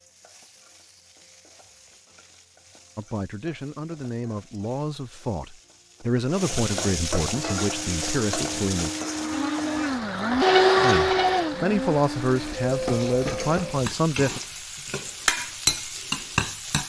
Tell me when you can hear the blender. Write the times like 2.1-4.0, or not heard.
7.3-12.6.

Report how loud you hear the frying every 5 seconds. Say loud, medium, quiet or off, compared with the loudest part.
quiet, medium, medium, loud.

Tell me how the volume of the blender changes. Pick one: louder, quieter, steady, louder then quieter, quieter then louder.
louder then quieter.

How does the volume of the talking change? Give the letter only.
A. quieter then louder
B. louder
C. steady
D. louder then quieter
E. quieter
B.